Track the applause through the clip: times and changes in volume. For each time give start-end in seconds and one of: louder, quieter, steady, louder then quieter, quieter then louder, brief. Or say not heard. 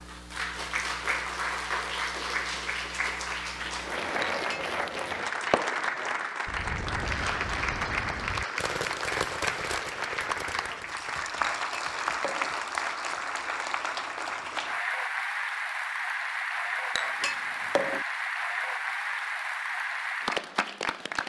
0.0-21.2 steady.